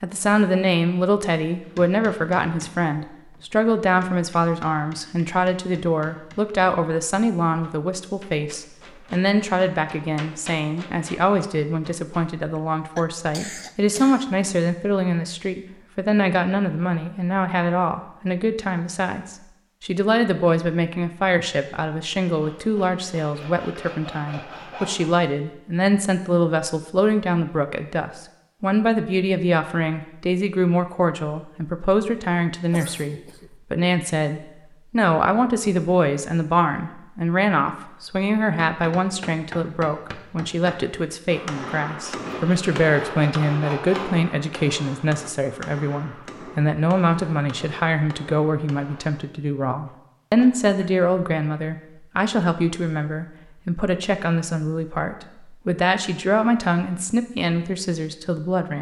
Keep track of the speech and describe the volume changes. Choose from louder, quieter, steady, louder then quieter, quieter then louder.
steady.